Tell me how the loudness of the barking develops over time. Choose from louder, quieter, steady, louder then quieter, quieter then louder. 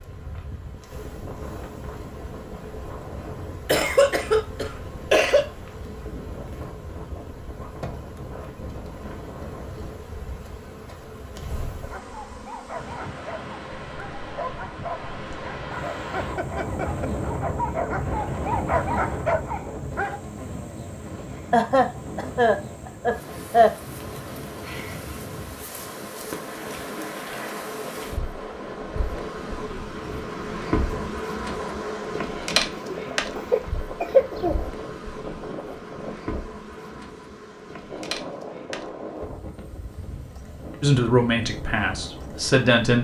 louder.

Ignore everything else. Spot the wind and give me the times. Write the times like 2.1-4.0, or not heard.
0.0-42.7.